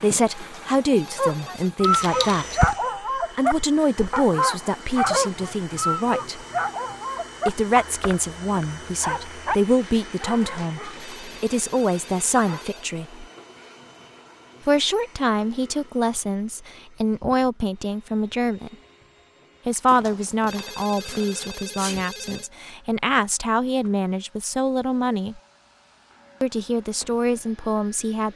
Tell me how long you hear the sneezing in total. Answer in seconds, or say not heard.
2 s.